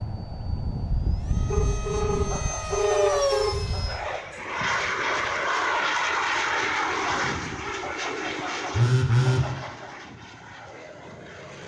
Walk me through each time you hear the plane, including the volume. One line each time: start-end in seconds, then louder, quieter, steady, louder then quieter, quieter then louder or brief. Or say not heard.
0.0-11.6 louder then quieter.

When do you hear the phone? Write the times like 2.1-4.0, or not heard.
1.5-3.5, 8.8-9.4.